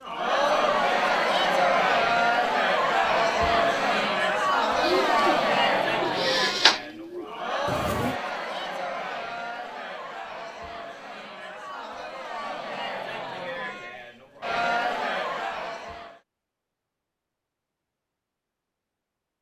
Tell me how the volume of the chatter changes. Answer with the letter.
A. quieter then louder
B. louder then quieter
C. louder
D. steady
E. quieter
A.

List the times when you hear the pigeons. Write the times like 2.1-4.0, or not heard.
4.8-8.2.